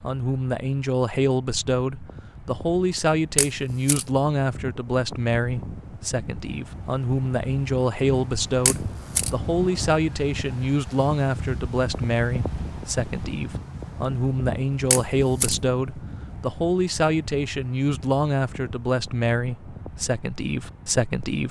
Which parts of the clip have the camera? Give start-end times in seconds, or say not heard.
3.4-4.0, 8.7-9.3, 14.9-15.6.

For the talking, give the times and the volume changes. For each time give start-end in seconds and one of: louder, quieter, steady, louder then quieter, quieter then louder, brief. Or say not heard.
0.0-21.4 steady.